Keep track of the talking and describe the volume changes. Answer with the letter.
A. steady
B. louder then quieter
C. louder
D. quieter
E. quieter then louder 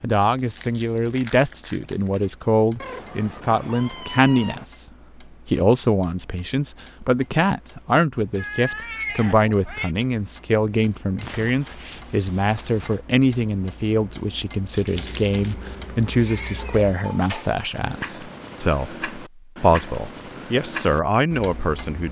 A.